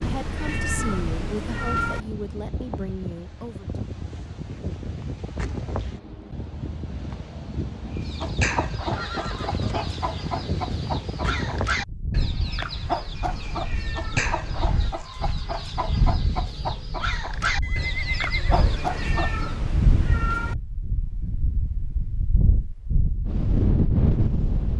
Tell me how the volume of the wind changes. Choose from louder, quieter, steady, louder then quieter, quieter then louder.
louder.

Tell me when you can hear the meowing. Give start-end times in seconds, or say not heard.
0.0-2.0, 13.2-14.8, 18.6-20.6.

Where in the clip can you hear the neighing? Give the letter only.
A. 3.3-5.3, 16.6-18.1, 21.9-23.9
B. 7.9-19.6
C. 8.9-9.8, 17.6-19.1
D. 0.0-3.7
C.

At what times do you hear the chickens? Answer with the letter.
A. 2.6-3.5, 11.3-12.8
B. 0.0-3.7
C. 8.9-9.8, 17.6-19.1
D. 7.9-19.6
D.